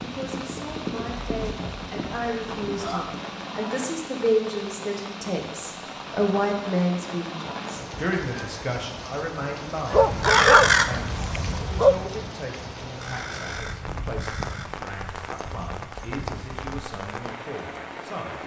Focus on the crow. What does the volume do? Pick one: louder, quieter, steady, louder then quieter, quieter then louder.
quieter.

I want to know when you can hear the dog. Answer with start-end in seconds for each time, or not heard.
9.9-11.9.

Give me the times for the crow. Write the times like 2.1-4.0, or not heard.
9.9-14.7.